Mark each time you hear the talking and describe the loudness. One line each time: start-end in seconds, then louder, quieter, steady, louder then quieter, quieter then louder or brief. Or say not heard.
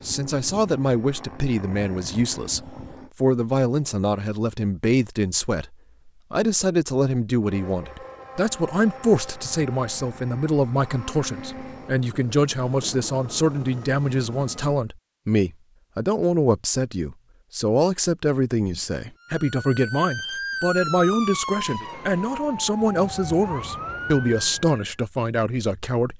0.1-26.1 steady.